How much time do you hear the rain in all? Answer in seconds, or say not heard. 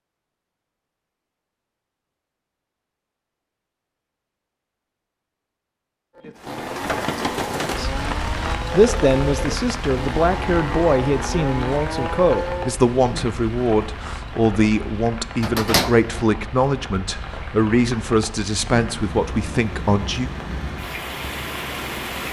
16 s.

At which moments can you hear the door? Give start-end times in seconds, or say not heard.
15.4-16.2.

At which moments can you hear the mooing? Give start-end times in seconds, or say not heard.
6.2-12.8.